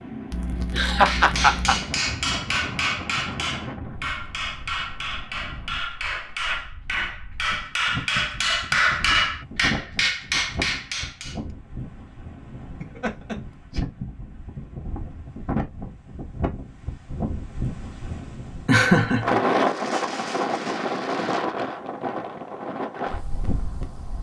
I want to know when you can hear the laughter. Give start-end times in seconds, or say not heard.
0.3-1.9, 12.8-13.8, 18.6-19.4.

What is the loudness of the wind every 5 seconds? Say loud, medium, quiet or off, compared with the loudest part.
medium, medium, medium, loud, loud.